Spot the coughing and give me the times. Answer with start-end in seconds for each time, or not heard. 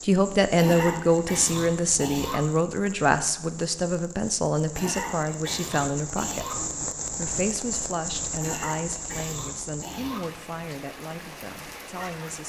0.6-2.4, 4.8-6.5, 8.4-10.2.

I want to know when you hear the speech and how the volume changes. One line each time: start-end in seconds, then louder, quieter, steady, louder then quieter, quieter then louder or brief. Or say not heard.
0.1-12.4 quieter.